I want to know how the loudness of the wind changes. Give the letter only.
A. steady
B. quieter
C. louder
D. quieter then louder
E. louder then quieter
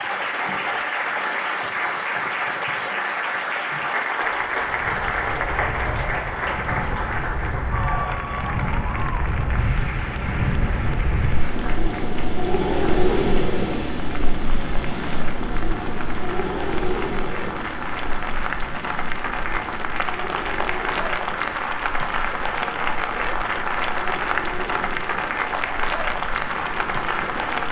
E.